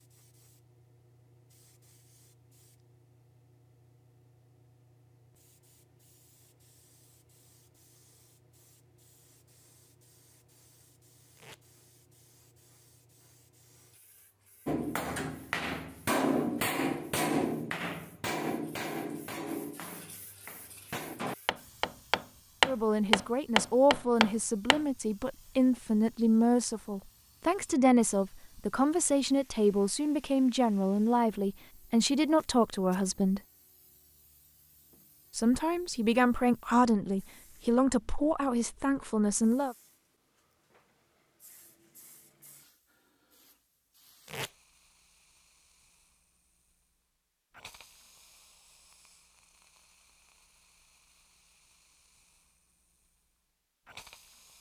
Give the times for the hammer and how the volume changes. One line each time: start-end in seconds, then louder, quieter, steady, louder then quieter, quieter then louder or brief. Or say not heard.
14.7-24.8 quieter then louder.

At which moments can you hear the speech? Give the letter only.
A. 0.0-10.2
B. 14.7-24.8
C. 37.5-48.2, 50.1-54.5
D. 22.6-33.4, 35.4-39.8
D.